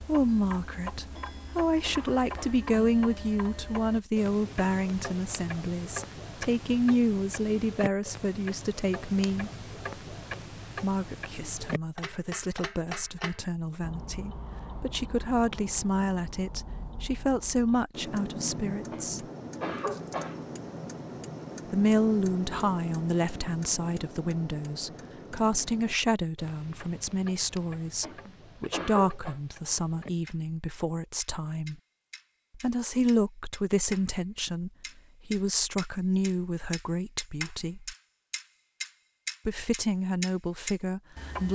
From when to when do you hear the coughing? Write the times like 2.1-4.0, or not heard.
1.1-2.6, 18.9-20.4, 28.0-29.4.